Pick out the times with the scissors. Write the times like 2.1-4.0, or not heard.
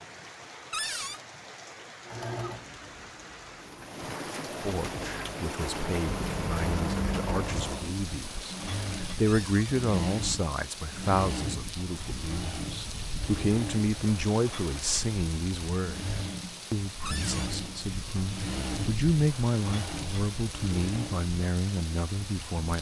6.0-7.8.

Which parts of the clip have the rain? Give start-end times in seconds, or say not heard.
0.0-22.7.